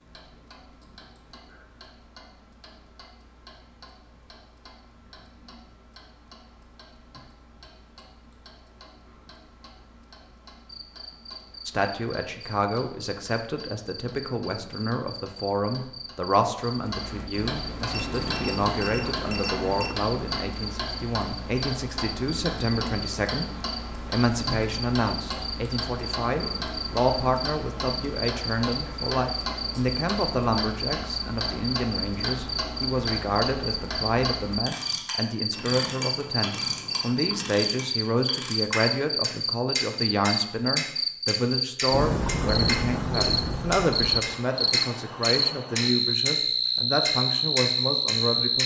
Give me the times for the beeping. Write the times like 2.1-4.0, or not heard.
17.9-19.9, 35.5-37.5.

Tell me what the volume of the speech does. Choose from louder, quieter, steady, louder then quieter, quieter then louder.
steady.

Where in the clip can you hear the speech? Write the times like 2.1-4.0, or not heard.
11.7-48.6.